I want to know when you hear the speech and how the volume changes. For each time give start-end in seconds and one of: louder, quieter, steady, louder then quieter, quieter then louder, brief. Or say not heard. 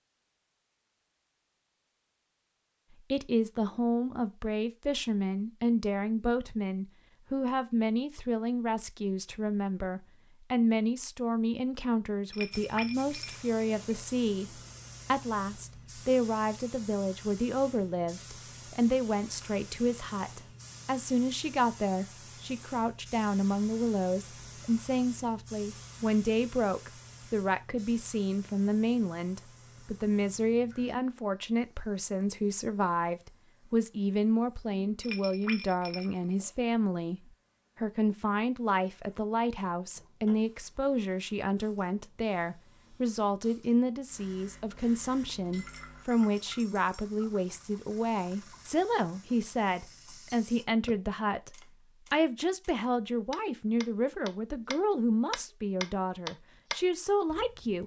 3.1-57.8 steady.